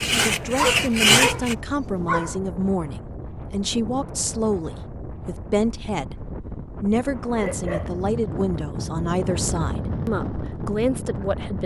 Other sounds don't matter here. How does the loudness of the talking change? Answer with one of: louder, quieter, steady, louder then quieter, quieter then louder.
steady.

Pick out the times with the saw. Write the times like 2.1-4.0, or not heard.
0.0-1.6.